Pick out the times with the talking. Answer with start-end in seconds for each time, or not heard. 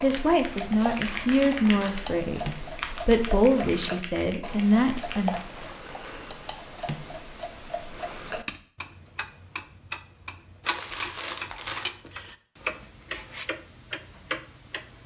0.0-5.3.